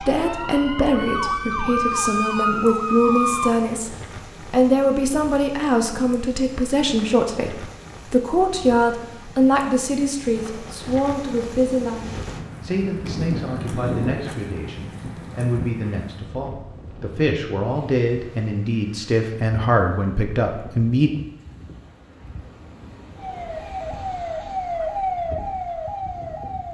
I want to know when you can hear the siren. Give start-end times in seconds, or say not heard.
0.0-3.6, 23.1-26.7.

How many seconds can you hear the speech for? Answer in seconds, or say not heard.
21 s.